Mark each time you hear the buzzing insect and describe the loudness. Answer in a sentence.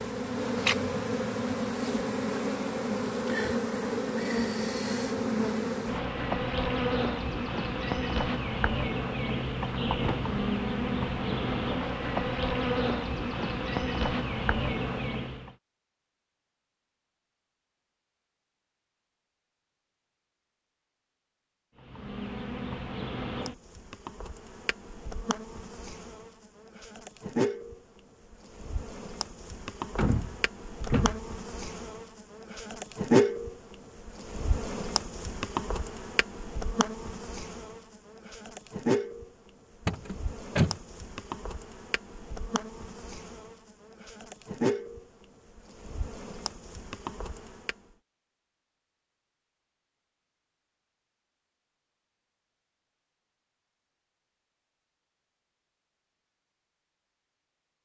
The buzzing insect can be heard from 0.0 to 15.5 s, at a steady volume; and from 21.8 to 47.8 s, getting louder then quieter.